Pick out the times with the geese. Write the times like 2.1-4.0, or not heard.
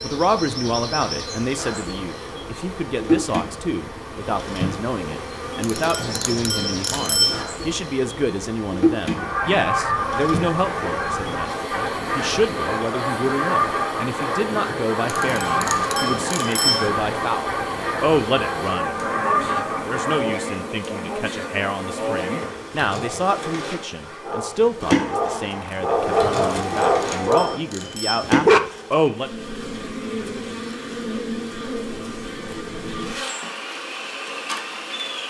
9.1-20.4.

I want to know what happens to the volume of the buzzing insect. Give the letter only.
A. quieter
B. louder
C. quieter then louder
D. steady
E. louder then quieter
D.